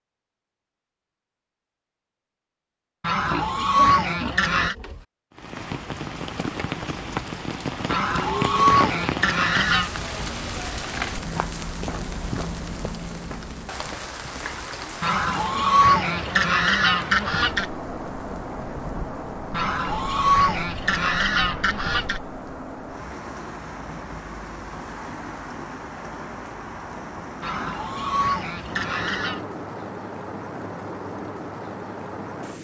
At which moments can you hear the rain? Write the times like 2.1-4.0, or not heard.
5.3-32.5.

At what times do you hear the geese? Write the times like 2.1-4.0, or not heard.
3.0-4.8, 7.8-9.9, 15.0-17.6, 19.5-22.2, 27.4-29.4.